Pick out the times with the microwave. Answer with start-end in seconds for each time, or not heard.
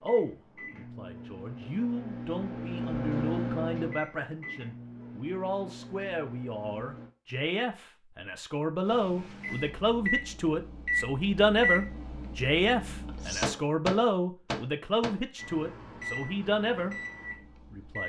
0.0-7.1, 8.8-18.0.